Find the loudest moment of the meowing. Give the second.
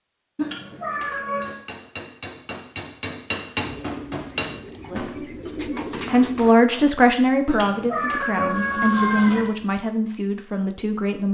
9 s.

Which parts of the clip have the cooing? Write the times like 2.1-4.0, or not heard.
3.5-6.5.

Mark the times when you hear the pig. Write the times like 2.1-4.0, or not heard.
not heard.